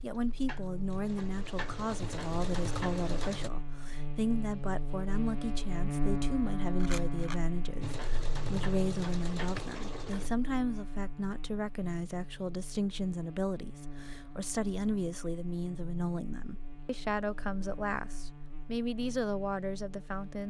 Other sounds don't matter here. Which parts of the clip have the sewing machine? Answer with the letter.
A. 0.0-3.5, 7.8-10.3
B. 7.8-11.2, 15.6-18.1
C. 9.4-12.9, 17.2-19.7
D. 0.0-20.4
A.